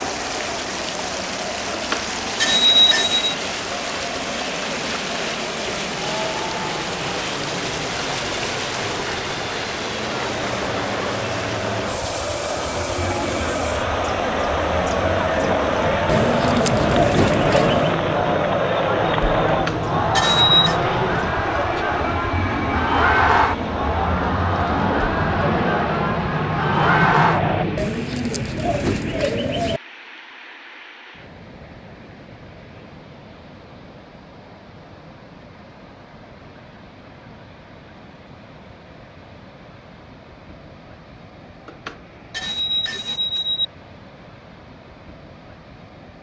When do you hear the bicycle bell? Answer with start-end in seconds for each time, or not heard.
1.7-3.4, 19.4-20.8, 41.6-43.6.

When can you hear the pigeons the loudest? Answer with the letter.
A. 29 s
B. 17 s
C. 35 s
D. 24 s
B.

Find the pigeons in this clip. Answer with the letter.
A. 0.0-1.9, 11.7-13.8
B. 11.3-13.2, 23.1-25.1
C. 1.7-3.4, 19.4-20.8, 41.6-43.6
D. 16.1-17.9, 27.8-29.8
D.